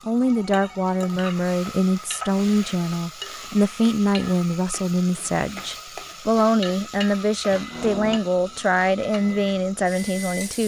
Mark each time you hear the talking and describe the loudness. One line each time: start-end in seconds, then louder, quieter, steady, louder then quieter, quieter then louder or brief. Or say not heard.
0.1-10.6 steady.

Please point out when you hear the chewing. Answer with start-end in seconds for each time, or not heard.
not heard.